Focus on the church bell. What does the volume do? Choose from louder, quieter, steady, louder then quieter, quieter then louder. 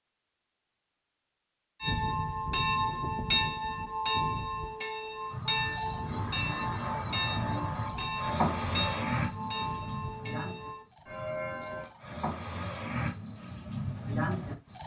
quieter.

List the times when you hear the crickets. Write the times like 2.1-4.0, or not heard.
5.3-14.8.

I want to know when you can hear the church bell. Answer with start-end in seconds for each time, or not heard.
1.8-11.9.